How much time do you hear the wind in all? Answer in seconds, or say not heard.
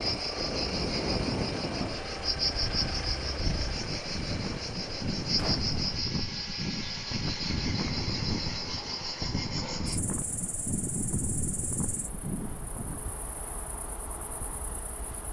13 s.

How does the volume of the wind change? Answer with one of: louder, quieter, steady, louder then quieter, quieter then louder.
steady.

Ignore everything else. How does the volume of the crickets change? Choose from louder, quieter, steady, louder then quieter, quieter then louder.
quieter.